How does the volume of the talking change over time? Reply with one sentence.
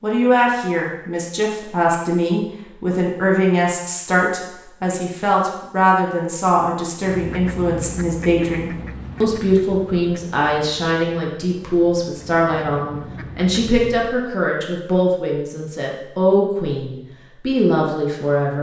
The volume of the talking stays about the same.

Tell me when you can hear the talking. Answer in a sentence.
You can hear the talking from 0.0 to 18.5 s.